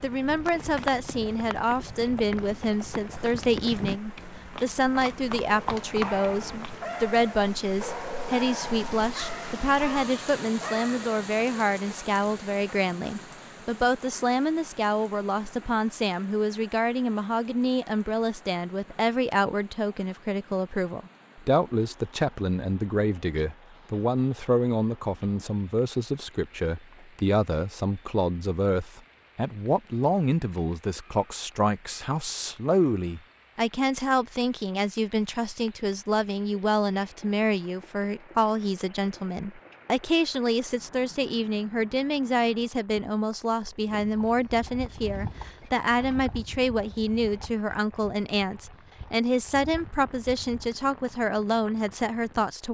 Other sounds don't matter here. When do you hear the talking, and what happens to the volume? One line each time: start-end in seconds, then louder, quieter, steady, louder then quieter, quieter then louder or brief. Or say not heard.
0.0-52.6 steady.